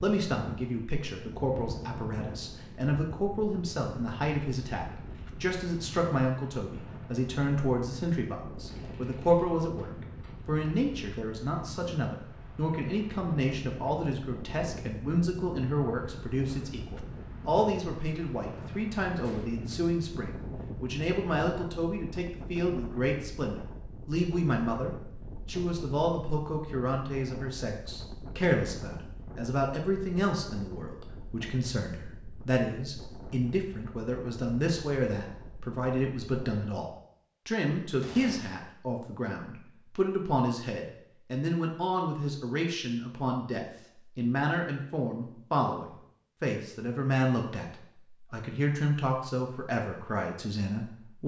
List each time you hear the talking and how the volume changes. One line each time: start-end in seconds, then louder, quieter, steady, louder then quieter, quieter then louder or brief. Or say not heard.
0.0-51.2 steady.